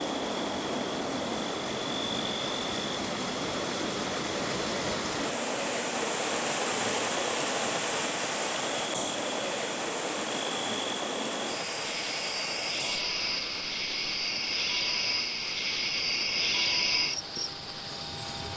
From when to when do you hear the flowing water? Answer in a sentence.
The flowing water can be heard from 0.0 to 18.5 s.